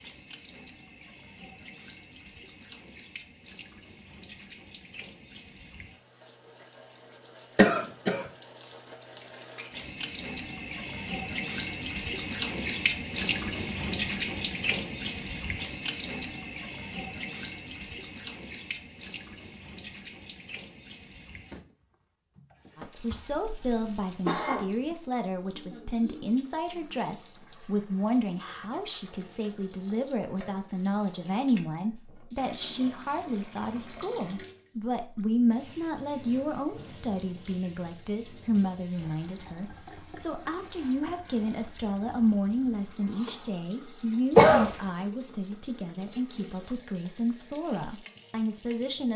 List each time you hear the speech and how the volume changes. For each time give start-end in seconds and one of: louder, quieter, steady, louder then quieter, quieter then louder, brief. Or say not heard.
22.8-49.1 steady.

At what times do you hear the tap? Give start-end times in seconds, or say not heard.
0.0-49.1.